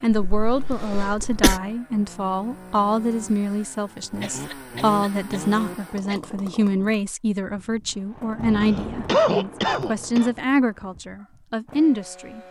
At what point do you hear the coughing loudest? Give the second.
9 s.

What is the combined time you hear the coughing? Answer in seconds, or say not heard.
5 s.